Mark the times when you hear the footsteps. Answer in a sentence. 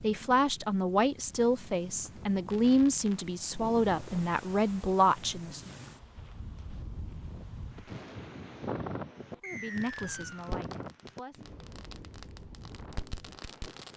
You can't hear the footsteps here.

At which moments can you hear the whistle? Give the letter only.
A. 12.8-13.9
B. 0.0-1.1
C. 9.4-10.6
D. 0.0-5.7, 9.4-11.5
C.